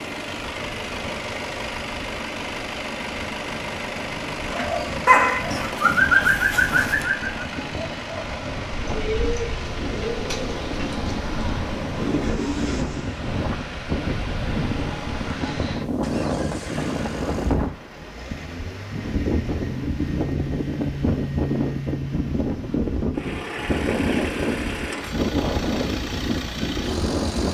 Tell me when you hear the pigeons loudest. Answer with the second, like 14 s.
6 s.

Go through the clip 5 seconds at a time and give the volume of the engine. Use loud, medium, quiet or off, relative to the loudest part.
loud, loud, medium, medium, loud, loud.